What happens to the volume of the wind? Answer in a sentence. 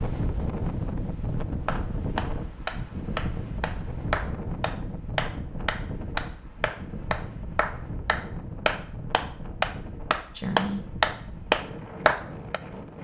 The loudness of the wind goes down.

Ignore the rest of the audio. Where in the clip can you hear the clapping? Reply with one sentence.
You can hear the clapping from 1.6 to 12.6 s.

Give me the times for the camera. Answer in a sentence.
You can't hear the camera here.